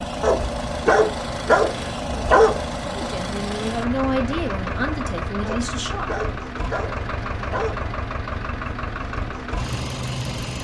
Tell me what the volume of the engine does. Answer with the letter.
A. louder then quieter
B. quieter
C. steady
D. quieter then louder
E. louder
C.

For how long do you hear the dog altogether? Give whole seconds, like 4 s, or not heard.
5 s.